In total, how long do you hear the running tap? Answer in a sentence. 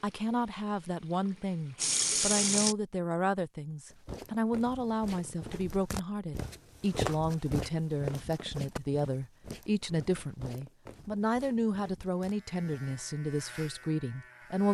You can hear the running tap for 3 seconds altogether.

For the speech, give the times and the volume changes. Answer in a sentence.
You can hear the speech from 0.0 to 14.6 s, at a steady volume.